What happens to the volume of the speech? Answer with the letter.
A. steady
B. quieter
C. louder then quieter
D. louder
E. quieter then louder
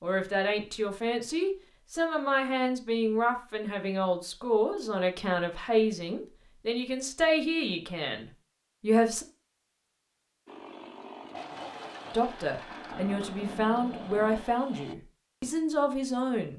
A.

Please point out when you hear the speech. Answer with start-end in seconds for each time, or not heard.
0.0-9.2, 12.1-16.5.